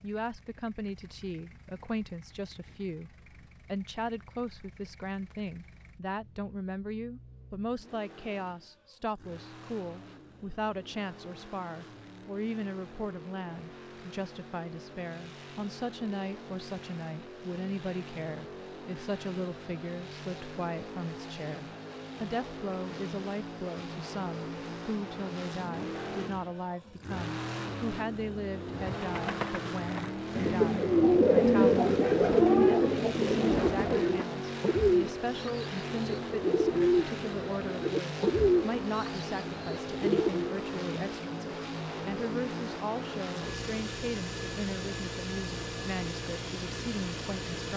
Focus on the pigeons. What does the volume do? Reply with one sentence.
The volume of the pigeons goes up, then down.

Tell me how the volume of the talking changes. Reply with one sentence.
The volume of the talking stays about the same.